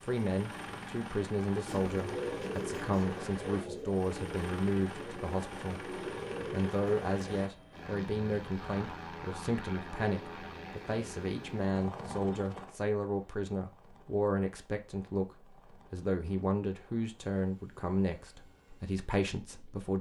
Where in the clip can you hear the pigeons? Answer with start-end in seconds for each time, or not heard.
1.6-7.5.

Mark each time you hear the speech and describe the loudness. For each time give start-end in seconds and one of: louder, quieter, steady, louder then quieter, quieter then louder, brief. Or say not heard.
0.0-5.8 steady
6.5-19.9 steady.